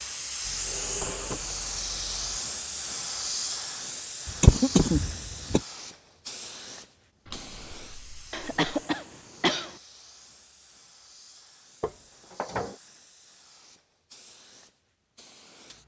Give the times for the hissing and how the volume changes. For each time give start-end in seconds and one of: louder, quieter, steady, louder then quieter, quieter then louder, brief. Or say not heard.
0.0-15.8 quieter.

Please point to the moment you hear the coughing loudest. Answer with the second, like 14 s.
5 s.